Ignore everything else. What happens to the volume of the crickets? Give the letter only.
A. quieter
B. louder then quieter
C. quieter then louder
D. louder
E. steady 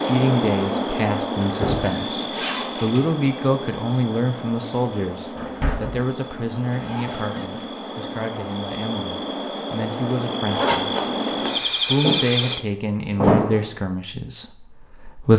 C.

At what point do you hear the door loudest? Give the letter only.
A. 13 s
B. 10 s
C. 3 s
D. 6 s
A.